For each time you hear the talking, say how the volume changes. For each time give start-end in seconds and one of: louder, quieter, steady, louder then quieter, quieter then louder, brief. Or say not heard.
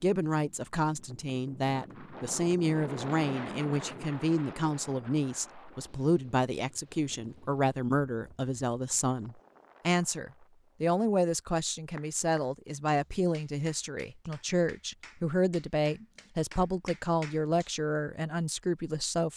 0.0-19.3 steady.